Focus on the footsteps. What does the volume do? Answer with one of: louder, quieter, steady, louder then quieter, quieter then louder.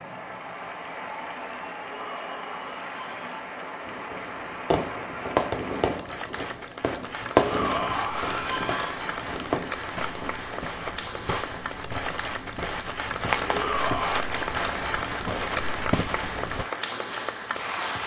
louder.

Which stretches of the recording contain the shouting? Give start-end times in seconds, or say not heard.
1.9-3.2, 7.3-9.0, 13.4-14.2.